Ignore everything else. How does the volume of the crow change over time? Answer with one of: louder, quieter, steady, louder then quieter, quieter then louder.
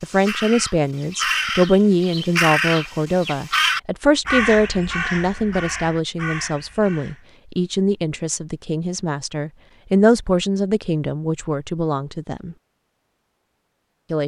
quieter.